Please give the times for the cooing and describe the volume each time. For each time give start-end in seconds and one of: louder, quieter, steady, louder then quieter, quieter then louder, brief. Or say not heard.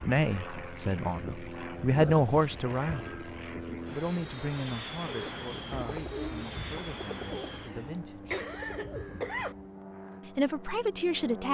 5.0-9.7 quieter then louder.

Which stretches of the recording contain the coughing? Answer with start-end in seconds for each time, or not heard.
2.0-2.6, 7.6-9.6.